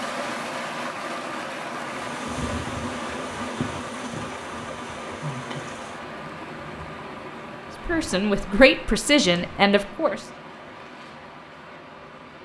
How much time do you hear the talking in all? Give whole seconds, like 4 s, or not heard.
2 s.